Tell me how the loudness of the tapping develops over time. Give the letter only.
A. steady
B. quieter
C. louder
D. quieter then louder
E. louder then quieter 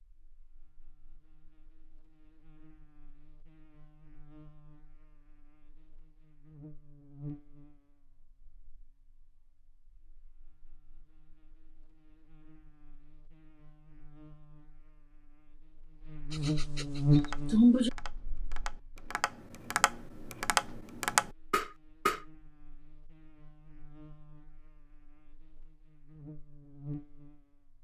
C.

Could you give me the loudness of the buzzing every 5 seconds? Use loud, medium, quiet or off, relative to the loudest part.
quiet, quiet, quiet, loud, quiet, quiet.